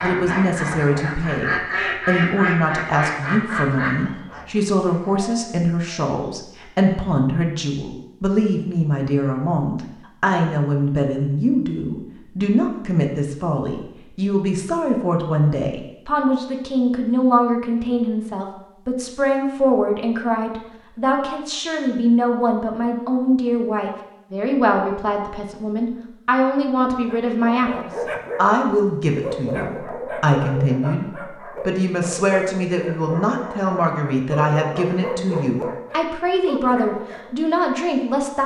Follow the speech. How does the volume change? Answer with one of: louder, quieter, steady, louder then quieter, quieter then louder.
steady.